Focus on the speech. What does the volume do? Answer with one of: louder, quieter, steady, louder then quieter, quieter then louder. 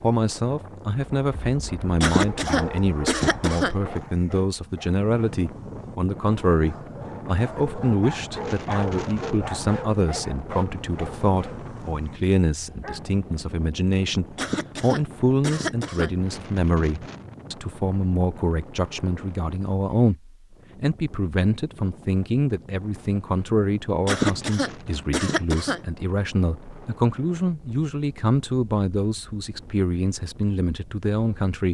steady.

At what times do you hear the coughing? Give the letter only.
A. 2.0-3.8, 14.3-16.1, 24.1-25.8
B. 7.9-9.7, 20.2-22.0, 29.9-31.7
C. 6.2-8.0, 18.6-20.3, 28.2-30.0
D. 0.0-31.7
A.